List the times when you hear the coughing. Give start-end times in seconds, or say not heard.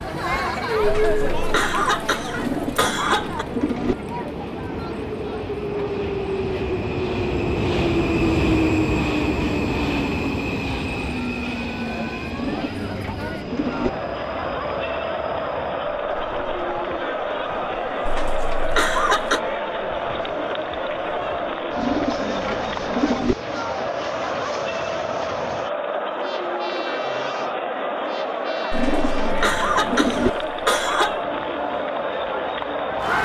0.8-3.5, 18.1-19.4, 28.7-31.2.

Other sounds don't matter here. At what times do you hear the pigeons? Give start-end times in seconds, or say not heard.
2.4-4.0, 12.3-13.9, 21.8-23.4, 28.7-30.3.